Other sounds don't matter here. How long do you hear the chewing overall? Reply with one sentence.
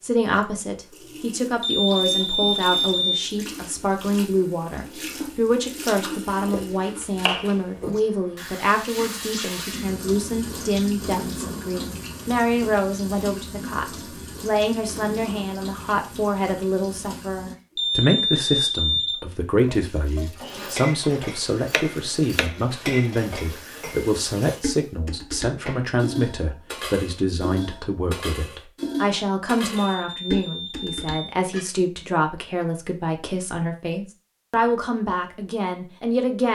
You can't hear the chewing here.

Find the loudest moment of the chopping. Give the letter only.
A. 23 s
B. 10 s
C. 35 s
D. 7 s
D.